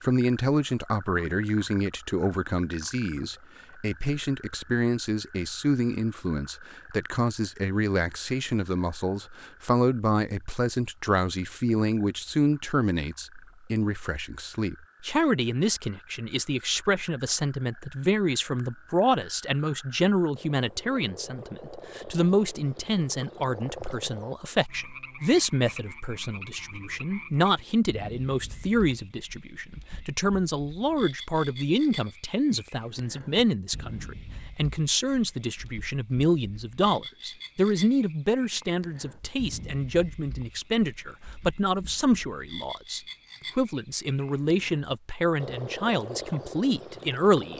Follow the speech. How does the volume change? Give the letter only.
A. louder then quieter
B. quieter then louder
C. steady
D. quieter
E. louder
C.